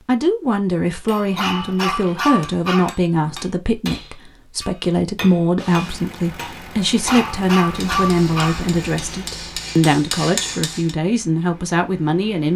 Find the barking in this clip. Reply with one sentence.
You can hear the barking from 1.4 to 3.0 s and from 7.0 to 8.7 s.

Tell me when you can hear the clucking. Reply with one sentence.
You can't hear the clucking here.